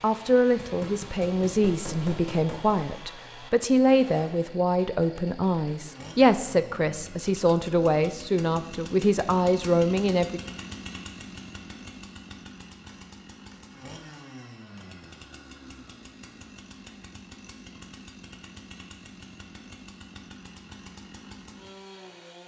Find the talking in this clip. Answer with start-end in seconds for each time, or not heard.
0.0-10.4.